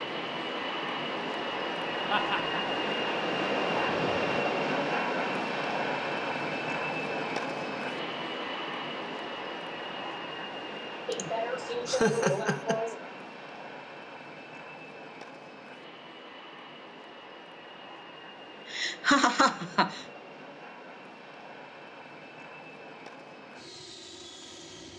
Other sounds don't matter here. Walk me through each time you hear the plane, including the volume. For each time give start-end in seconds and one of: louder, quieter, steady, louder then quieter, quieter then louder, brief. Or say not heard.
0.0-24.9 quieter.